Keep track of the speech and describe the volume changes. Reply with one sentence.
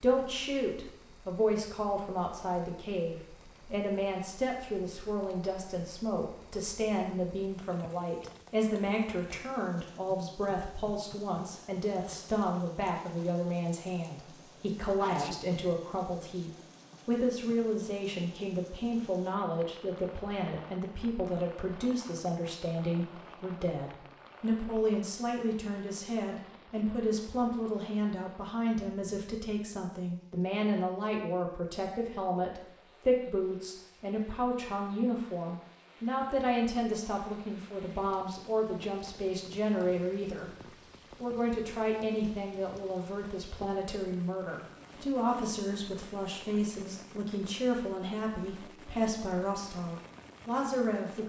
The volume of the speech stays about the same.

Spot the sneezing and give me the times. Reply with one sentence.
You can hear the sneezing from 14.9 to 15.4 s.